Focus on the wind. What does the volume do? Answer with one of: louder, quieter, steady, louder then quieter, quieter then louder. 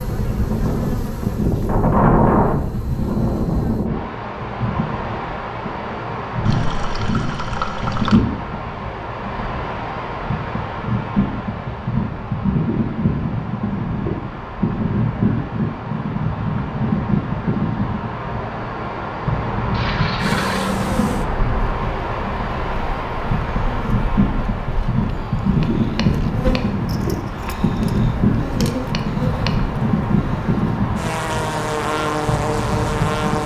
steady.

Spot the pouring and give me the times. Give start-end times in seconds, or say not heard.
6.5-8.2, 19.7-20.8.